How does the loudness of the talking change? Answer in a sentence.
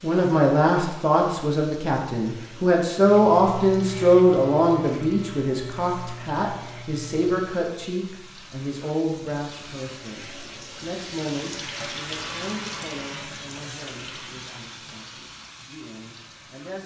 The loudness of the talking goes down.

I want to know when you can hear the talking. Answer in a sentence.
The talking can be heard from 0.0 to 16.8 s.